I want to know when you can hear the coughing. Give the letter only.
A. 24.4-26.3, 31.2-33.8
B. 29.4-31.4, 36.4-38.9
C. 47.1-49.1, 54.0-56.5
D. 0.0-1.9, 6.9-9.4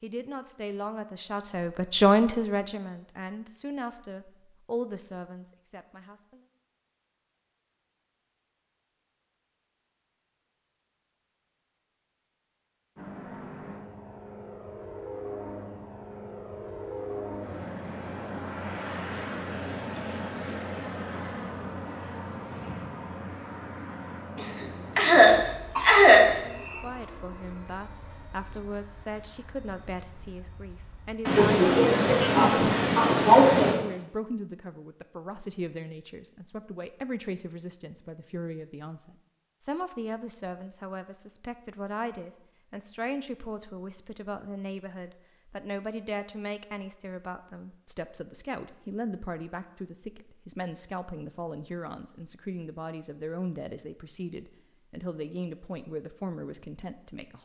A.